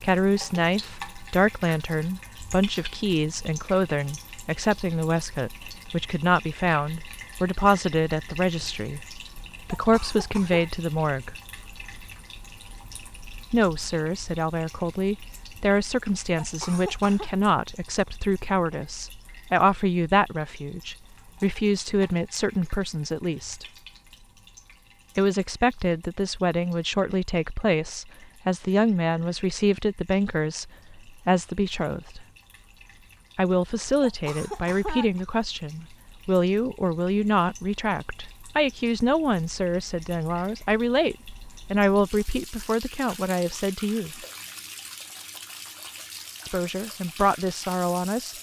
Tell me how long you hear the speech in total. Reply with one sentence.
You can hear the speech for 41 seconds altogether.